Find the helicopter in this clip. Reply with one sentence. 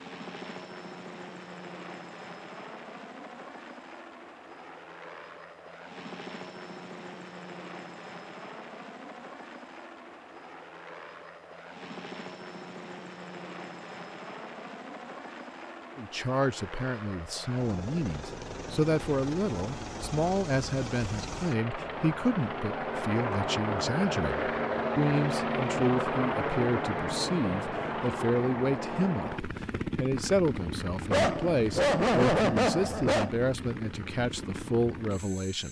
You can hear the helicopter from 0.0 to 35.6 s.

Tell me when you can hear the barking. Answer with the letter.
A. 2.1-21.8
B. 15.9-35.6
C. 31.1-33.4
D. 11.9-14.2
C.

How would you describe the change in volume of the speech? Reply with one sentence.
The volume of the speech stays about the same.